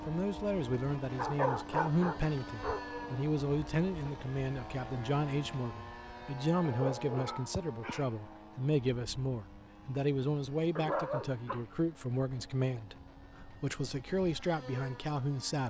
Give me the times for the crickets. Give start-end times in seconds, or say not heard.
not heard.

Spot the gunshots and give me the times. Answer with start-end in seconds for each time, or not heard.
not heard.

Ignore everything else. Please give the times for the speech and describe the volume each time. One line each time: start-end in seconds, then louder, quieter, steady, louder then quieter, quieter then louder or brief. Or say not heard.
0.1-15.6 steady.